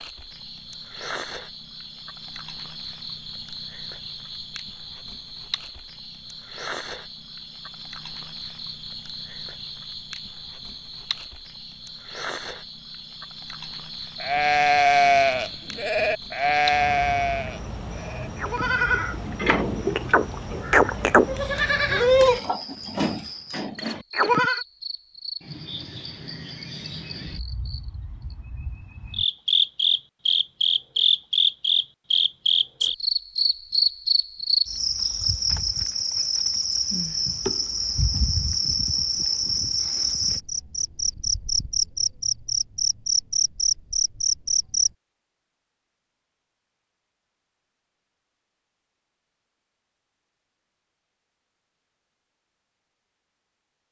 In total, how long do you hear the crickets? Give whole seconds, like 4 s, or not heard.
45 s.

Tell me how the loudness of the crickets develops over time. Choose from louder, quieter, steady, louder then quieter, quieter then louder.
louder.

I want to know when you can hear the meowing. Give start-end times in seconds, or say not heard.
not heard.